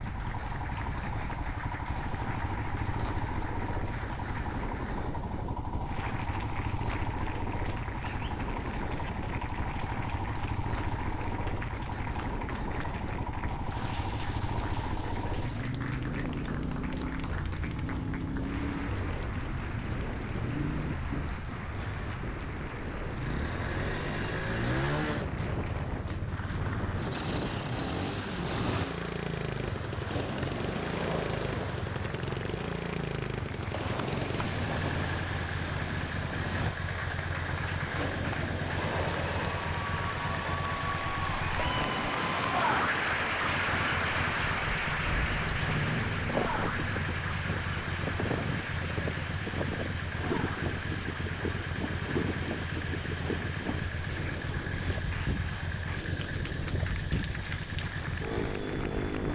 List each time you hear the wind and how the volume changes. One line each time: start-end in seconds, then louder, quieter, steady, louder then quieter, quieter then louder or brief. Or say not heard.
0.0-59.2 steady.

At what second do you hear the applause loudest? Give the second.
43 s.